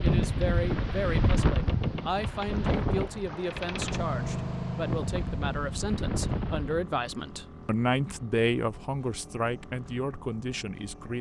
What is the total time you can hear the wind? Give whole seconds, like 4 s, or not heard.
7 s.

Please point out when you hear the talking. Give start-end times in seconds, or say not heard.
0.0-11.1.